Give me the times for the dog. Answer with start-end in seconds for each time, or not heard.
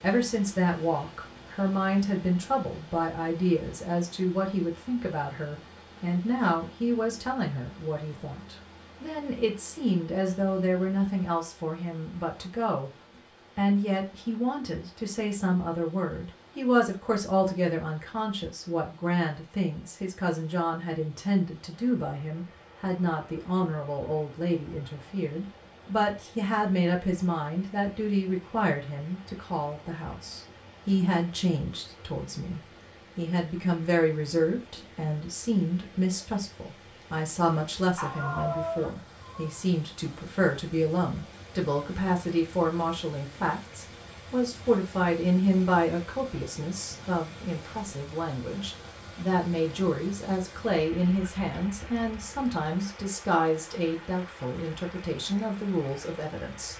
38.0-39.6.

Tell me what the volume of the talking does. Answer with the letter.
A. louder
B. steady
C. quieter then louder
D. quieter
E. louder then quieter
B.